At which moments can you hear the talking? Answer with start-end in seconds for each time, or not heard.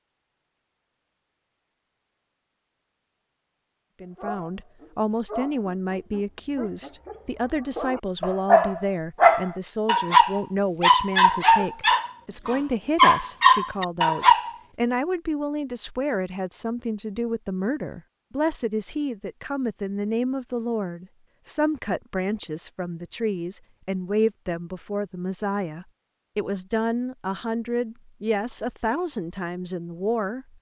4.0-30.5.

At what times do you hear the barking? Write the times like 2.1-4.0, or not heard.
4.0-14.6.